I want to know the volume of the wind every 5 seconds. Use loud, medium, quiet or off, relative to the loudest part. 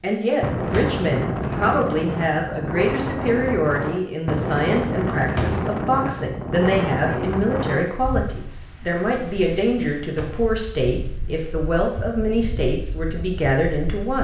loud, loud, quiet.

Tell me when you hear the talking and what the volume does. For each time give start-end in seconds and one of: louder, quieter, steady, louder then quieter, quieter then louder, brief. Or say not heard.
0.0-14.1 steady.